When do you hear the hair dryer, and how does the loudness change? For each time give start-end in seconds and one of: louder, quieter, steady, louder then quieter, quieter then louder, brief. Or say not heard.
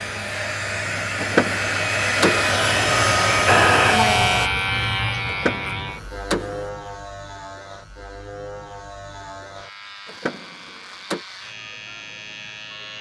0.0-4.5 louder.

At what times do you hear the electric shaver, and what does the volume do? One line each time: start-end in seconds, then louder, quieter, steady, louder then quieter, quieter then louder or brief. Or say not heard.
0.0-12.9 louder then quieter.